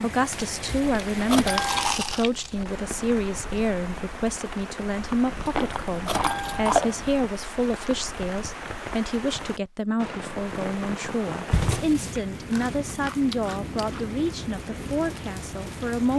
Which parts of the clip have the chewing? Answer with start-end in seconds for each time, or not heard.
0.3-2.8, 5.5-7.2, 12.3-14.1.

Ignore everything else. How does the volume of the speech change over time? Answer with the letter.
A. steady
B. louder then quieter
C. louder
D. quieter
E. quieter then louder
A.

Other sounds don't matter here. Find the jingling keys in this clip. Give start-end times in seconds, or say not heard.
0.7-1.9, 5.5-6.8, 11.5-12.2.